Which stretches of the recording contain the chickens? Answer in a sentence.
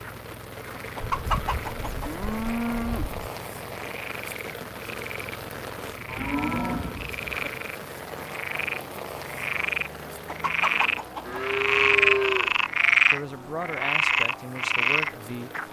The chickens can be heard from 0.8 to 2.1 s and from 10.1 to 11.4 s.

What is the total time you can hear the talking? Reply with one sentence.
The talking can be heard for 3 seconds in total.